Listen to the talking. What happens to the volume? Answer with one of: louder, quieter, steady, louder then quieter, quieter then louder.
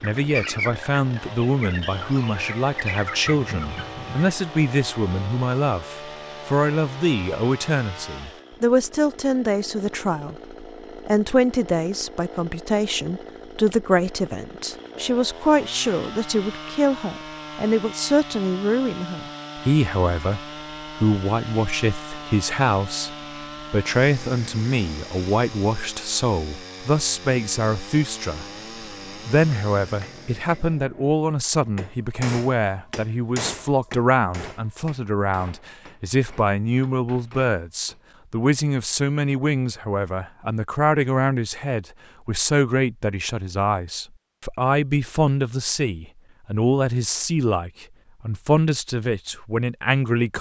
steady.